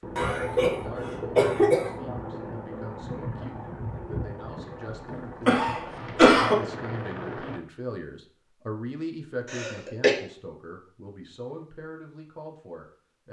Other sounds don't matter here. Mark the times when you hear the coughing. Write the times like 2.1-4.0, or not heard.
0.1-1.9, 4.8-6.6, 9.4-10.2.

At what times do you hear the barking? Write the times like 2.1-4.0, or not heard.
not heard.